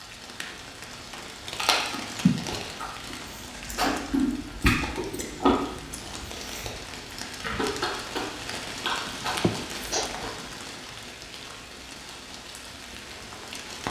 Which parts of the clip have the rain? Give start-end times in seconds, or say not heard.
0.0-13.8.